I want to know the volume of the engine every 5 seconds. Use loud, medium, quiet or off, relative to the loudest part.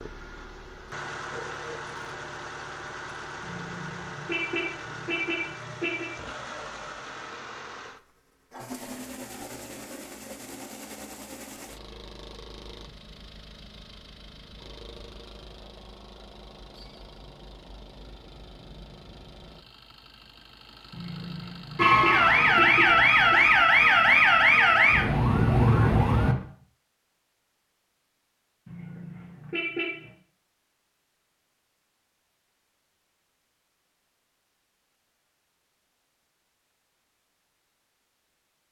loud, loud, medium, medium, medium, off, off, off.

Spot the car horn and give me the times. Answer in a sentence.
You can hear the car horn from 3.4 to 6.1 s, from 20.9 to 23.4 s and from 28.6 to 30.0 s.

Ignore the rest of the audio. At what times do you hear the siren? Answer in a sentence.
The siren can be heard from 21.8 to 26.4 s.